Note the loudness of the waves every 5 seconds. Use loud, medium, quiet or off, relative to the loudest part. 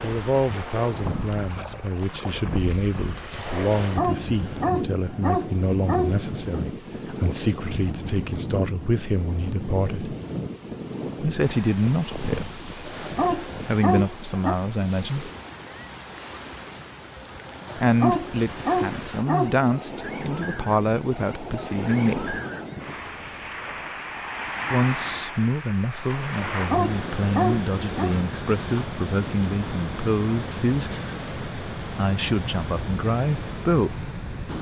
loud, loud, loud, medium, loud, loud, loud.